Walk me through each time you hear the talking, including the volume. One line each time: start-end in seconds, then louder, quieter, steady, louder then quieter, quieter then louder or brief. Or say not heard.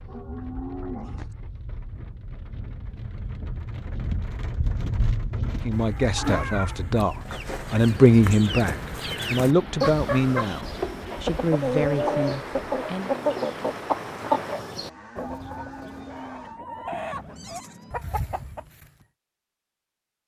5.6-13.1 louder then quieter.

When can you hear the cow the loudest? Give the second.
1 s.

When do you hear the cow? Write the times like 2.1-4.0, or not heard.
0.1-1.4, 14.8-16.6.